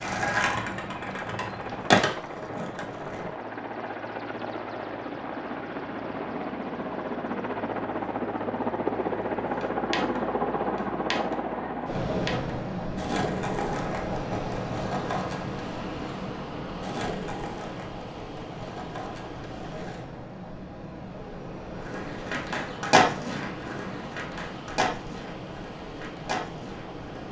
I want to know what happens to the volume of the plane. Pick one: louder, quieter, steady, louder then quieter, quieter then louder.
louder then quieter.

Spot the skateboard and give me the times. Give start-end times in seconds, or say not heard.
0.0-3.3, 9.3-20.1, 21.8-27.2.